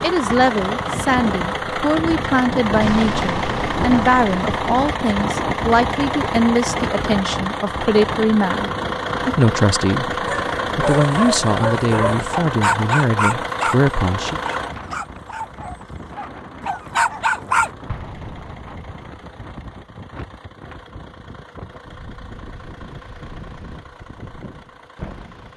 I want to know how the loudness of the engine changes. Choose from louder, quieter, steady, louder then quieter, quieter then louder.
quieter.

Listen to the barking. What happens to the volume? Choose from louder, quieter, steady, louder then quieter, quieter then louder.
quieter then louder.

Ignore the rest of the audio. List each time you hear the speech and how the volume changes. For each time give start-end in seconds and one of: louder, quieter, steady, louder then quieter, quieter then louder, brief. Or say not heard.
0.0-14.4 steady.